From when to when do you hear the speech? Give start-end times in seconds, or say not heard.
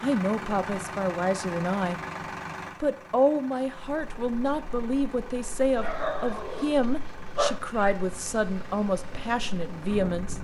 0.0-2.0, 2.8-10.3.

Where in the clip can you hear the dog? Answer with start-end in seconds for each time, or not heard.
5.8-7.6.